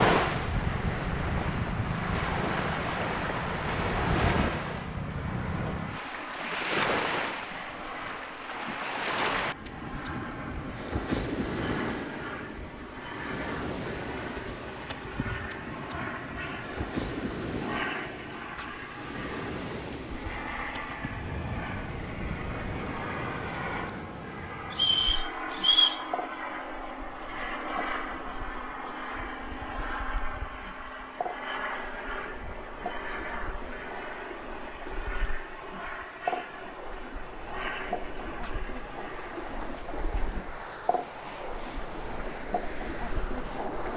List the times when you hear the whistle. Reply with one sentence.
You can hear the whistle from 24.7 to 26.0 s.